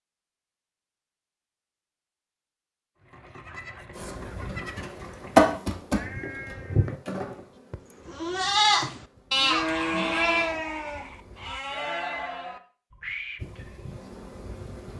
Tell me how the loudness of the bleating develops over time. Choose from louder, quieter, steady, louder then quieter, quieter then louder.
louder then quieter.